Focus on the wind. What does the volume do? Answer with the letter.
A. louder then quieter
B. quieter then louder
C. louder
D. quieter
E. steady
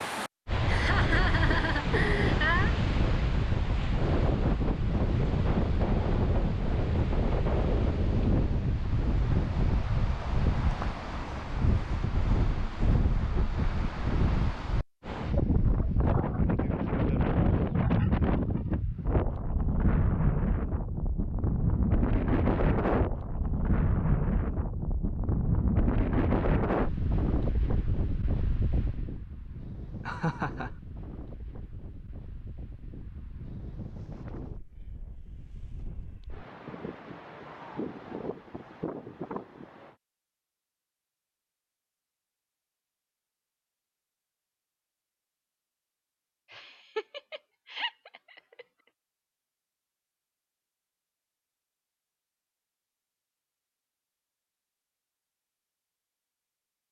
D.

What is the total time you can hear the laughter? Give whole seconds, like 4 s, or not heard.
5 s.